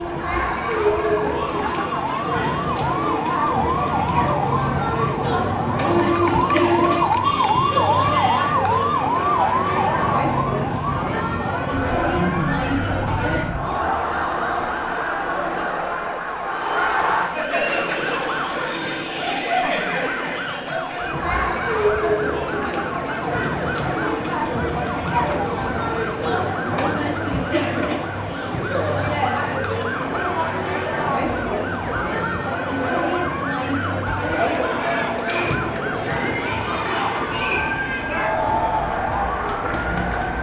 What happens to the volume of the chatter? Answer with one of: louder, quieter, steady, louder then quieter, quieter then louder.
steady.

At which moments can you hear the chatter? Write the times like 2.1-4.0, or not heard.
0.0-40.3.